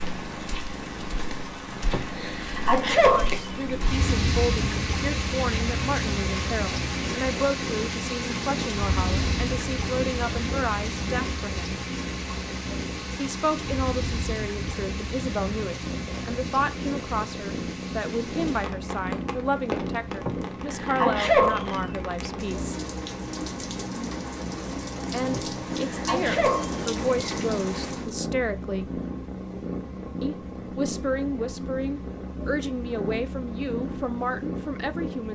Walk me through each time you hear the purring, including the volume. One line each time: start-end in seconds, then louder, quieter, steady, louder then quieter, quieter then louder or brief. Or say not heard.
0.0-35.3 steady.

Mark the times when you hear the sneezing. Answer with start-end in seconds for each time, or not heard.
1.9-3.5, 20.2-21.8, 25.3-27.4.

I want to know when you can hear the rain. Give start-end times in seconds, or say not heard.
0.0-28.1.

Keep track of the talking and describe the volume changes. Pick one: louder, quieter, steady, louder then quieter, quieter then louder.
steady.